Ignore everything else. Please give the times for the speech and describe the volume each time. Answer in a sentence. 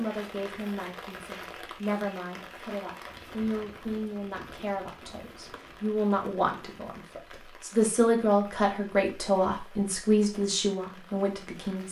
The speech can be heard from 0.0 to 11.8 s, getting louder.